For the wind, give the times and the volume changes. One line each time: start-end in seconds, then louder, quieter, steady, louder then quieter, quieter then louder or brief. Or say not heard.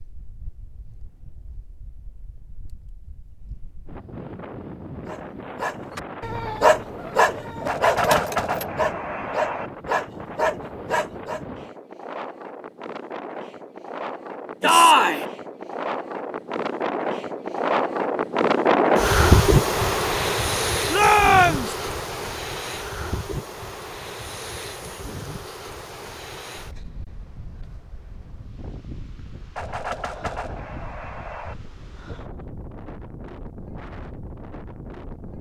0.0-35.3 louder then quieter.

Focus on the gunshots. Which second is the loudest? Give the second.
8 s.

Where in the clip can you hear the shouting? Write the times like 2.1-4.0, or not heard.
14.6-15.2, 20.9-21.8.